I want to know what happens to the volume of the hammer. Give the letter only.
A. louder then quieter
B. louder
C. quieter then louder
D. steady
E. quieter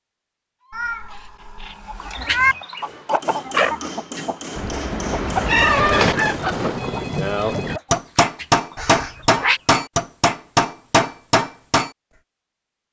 B.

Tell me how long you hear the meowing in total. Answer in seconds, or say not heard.
4 s.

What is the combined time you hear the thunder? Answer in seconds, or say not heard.
2 s.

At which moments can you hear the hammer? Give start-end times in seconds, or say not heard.
2.8-11.9.